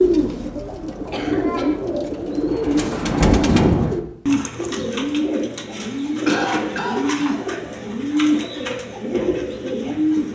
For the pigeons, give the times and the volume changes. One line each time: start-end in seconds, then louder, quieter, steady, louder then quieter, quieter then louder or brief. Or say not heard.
0.0-10.2 steady.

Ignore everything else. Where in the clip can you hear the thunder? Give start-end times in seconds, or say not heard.
1.9-3.9.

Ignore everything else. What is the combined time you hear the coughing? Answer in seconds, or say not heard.
2 s.